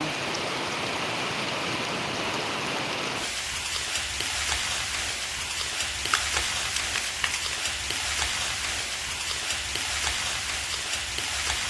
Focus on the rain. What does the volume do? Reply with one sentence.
The loudness of the rain stays about the same.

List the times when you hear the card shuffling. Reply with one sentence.
The card shuffling can be heard from 6.1 to 7.6 s.